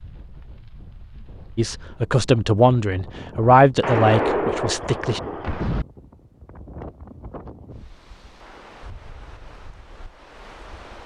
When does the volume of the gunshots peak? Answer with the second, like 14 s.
4 s.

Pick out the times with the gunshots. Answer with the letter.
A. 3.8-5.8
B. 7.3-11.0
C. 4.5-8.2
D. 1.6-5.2
A.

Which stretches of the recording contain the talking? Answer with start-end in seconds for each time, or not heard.
1.6-5.2.